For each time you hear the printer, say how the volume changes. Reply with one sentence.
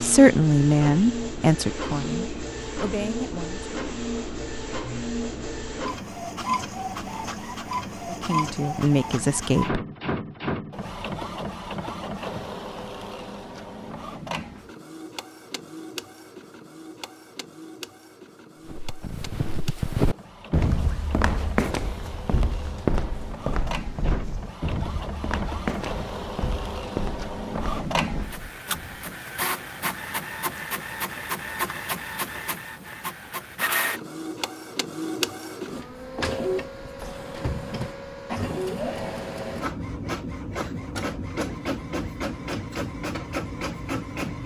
The printer can be heard from 0.0 to 44.4 s, getting quieter then louder.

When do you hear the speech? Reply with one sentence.
The speech can be heard from 0.0 to 3.6 s and from 8.1 to 9.8 s.